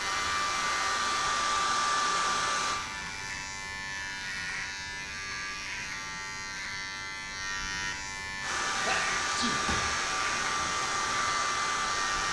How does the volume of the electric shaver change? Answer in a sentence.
The volume of the electric shaver stays about the same.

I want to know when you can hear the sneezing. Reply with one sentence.
You can hear the sneezing from 8.8 to 9.6 s.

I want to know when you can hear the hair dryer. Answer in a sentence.
The hair dryer can be heard from 0.0 to 2.8 s and from 8.4 to 12.2 s.